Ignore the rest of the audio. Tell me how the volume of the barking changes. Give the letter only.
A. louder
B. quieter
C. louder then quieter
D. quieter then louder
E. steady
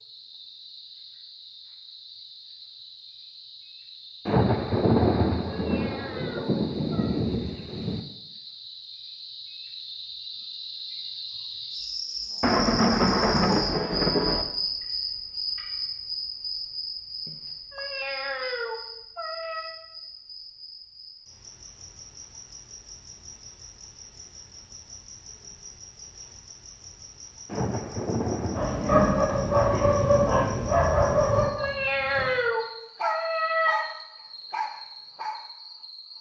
B.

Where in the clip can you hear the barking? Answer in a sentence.
The barking can be heard from 28.5 to 35.4 s.